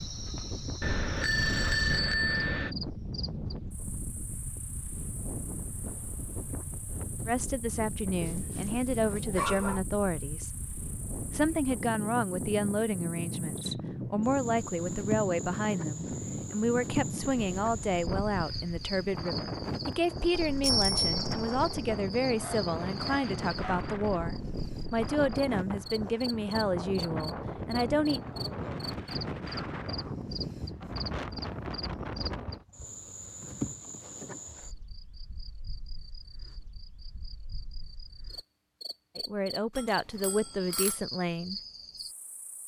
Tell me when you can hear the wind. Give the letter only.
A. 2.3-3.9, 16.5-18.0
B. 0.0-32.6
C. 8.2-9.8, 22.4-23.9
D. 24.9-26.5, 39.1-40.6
B.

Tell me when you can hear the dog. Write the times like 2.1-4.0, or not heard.
8.2-9.8, 22.4-23.9.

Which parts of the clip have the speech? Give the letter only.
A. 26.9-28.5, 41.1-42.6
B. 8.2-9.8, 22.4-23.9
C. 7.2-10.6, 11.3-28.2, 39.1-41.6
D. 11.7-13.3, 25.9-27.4
C.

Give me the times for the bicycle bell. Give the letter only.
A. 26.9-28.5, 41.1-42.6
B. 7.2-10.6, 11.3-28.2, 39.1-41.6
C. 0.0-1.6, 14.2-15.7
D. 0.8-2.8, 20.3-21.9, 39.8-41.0
D.